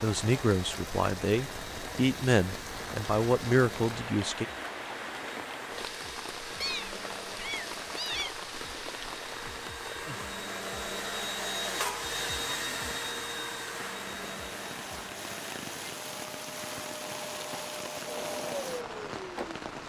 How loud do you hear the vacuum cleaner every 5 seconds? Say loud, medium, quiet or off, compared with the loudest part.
medium, medium, loud, medium.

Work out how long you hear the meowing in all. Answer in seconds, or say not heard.
2 s.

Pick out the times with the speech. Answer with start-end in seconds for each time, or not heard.
0.0-4.5.